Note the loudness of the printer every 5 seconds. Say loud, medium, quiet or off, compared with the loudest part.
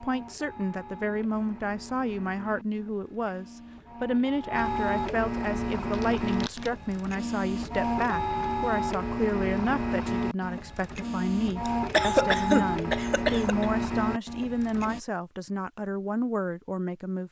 medium, loud, loud, off.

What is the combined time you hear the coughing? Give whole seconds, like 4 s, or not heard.
2 s.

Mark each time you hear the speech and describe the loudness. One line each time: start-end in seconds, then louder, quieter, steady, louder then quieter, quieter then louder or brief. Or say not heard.
0.0-17.2 steady.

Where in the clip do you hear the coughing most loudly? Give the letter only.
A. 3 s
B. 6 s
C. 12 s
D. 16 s
C.